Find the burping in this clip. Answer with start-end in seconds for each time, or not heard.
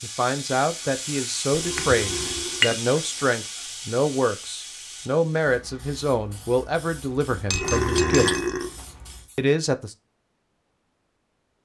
1.5-2.8, 7.5-8.8.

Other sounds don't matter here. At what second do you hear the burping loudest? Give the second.
8 s.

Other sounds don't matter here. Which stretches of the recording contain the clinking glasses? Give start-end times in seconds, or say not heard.
1.8-2.8, 7.5-8.8.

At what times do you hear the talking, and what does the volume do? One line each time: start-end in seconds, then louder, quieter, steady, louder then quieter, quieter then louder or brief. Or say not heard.
0.0-8.4 steady
9.3-9.9 brief.